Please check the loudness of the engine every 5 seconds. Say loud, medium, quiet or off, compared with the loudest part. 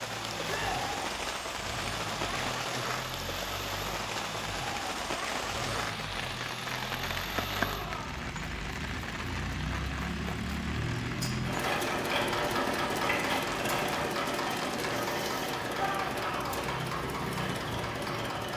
medium, medium, loud, loud.